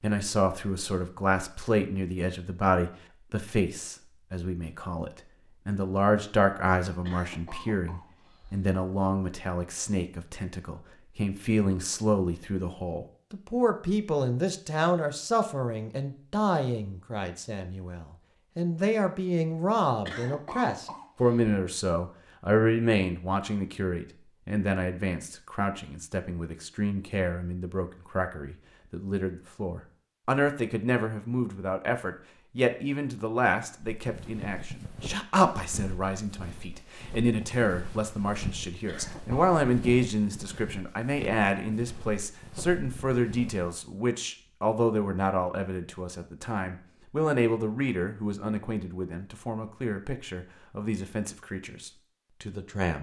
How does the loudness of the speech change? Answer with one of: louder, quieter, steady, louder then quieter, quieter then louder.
steady.